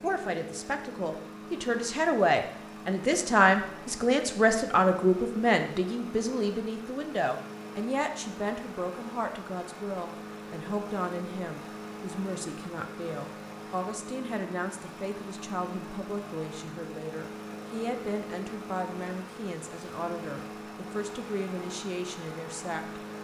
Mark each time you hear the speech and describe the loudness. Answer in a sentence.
The speech can be heard from 0.0 to 23.2 s, getting quieter.